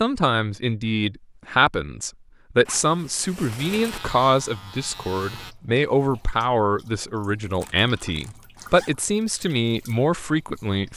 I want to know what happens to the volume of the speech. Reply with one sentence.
The loudness of the speech stays about the same.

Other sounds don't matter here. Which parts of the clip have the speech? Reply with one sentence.
The speech can be heard from 0.0 to 10.9 s.